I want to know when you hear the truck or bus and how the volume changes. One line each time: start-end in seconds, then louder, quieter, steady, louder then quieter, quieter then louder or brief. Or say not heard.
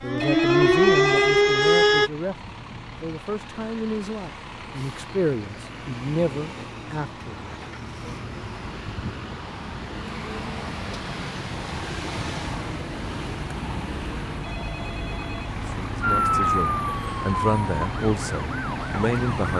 0.1-19.5 louder.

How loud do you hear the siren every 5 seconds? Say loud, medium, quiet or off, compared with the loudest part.
loud, off, off, medium.